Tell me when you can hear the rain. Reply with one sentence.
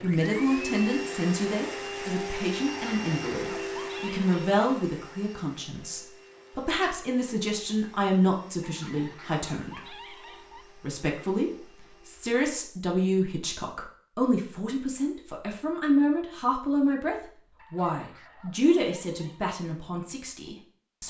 You can't hear the rain here.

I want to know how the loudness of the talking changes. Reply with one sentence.
The loudness of the talking stays about the same.